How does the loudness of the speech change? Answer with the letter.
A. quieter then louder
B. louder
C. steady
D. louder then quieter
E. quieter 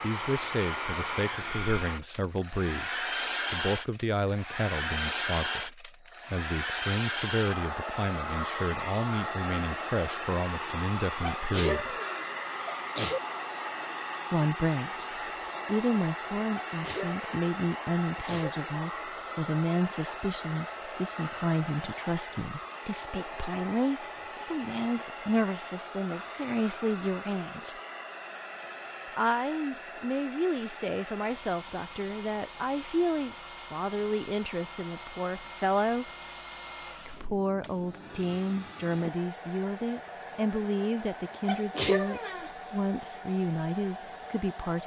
C.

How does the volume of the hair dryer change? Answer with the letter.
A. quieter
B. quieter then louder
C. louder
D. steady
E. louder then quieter
A.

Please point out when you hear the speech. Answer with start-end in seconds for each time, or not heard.
0.0-11.9, 14.3-27.8, 29.1-36.1, 37.0-44.8.